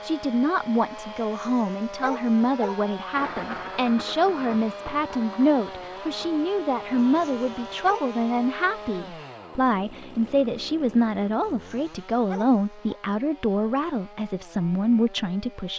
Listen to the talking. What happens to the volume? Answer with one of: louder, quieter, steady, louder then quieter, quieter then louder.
steady.